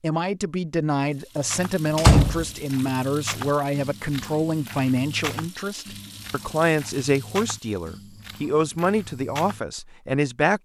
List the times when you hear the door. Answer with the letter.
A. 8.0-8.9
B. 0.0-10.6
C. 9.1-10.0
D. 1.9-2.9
D.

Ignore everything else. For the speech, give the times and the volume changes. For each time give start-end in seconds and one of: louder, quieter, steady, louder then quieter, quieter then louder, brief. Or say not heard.
0.0-10.6 steady.